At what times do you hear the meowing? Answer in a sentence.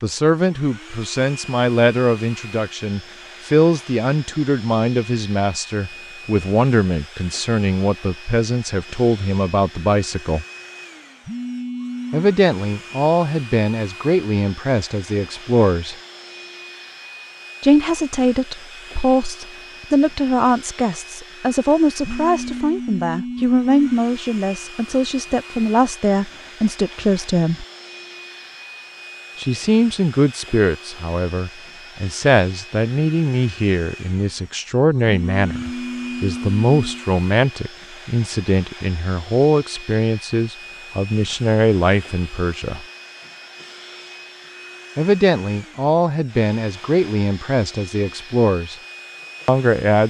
The meowing can't be heard in this clip.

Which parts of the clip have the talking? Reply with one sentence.
The talking can be heard from 0.0 to 10.4 s, from 12.1 to 15.9 s, from 17.6 to 27.6 s, from 29.4 to 42.9 s, from 45.0 to 48.8 s and from 49.5 to 50.0 s.